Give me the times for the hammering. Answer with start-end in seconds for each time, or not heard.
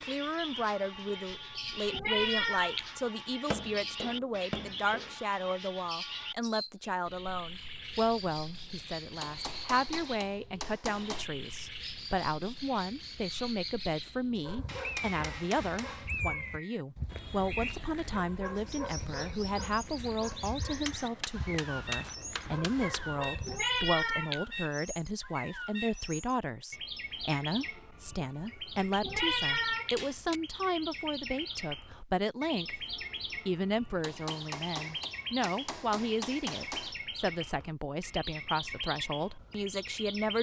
3.5-5.2, 9.2-11.2, 14.7-16.1, 20.8-23.2, 29.9-30.4, 34.0-37.0.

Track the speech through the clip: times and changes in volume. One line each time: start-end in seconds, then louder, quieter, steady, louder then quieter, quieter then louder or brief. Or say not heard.
0.0-40.3 steady.